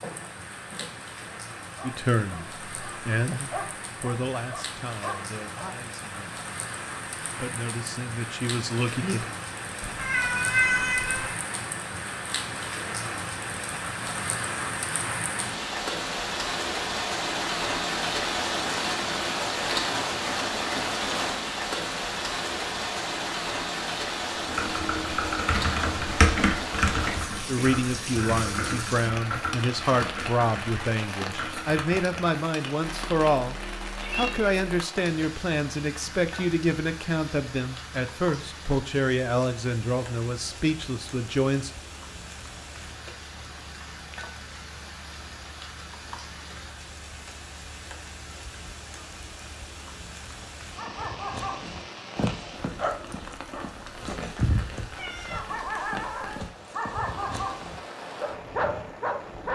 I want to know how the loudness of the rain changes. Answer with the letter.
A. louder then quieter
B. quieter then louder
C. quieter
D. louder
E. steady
A.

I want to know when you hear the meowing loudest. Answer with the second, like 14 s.
11 s.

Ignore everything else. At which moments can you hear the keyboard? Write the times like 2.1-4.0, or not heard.
24.4-32.4.